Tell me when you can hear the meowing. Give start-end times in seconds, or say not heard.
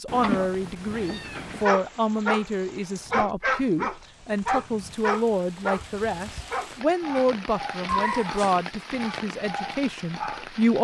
0.1-1.6, 7.8-8.6.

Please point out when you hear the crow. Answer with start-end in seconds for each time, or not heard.
not heard.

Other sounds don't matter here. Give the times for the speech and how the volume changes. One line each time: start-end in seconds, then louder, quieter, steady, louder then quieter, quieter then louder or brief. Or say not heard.
0.0-10.7 steady.